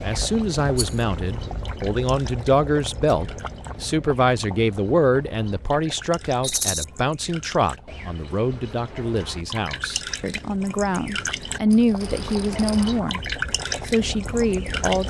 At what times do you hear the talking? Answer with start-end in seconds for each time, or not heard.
0.0-13.2, 13.8-15.0.